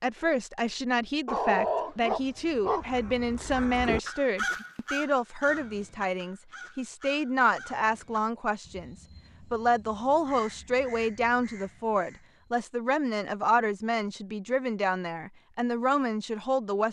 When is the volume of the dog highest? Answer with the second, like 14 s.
2 s.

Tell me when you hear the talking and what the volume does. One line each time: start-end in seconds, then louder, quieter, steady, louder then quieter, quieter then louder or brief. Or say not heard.
0.0-16.8 steady.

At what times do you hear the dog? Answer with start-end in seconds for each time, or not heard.
1.2-2.9.